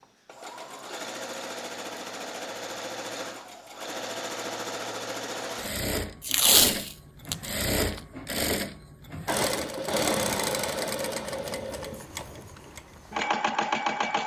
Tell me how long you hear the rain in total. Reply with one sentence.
You can't hear the rain here.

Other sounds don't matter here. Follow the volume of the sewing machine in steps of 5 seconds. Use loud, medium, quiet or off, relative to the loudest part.
medium, loud, loud.